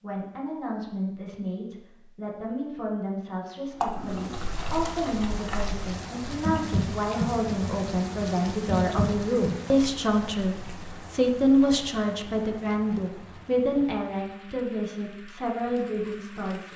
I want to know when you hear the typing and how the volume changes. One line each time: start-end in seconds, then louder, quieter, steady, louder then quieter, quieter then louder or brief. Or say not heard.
3.8-9.6 louder.